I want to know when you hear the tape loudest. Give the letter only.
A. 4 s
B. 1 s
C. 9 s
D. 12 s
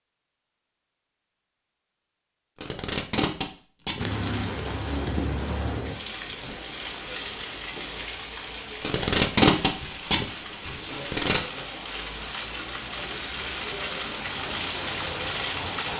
C.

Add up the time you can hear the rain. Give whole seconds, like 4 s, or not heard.
12 s.